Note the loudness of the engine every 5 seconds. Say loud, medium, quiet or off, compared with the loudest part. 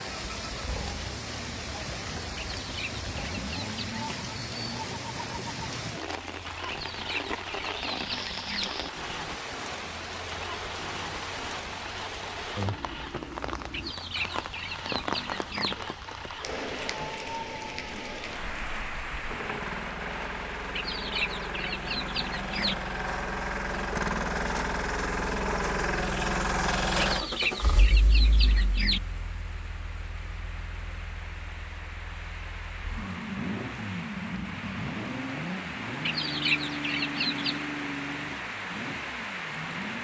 medium, medium, medium, medium, loud, loud, medium, medium.